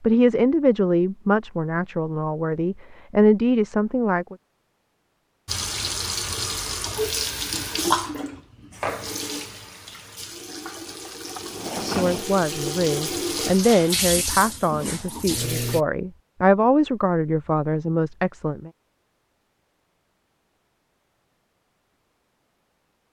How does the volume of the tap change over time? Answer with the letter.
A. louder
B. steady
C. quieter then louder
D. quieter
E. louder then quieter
C.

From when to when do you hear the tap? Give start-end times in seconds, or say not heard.
5.5-15.8.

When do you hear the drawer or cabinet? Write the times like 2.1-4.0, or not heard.
11.2-12.2.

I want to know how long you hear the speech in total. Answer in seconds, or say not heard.
11 s.